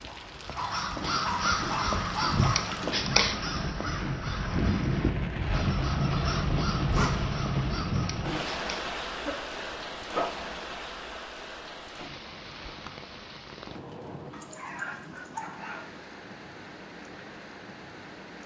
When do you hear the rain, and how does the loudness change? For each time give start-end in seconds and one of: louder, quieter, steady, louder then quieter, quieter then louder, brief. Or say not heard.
0.0-18.4 louder then quieter.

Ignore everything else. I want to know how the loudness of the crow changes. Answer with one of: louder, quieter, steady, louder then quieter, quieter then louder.
quieter.